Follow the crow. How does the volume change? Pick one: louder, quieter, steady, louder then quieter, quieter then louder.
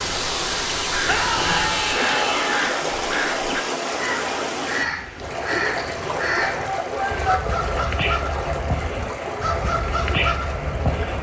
steady.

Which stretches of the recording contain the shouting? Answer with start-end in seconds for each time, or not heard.
1.1-2.7, 6.7-7.4.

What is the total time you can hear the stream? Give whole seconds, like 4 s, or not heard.
11 s.